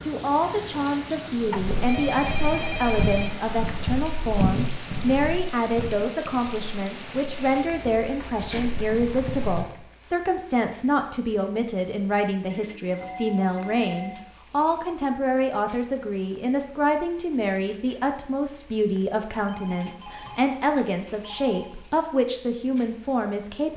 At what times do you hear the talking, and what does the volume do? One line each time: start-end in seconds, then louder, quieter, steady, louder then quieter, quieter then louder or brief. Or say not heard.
0.0-23.7 steady.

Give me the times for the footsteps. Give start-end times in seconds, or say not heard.
1.4-9.6.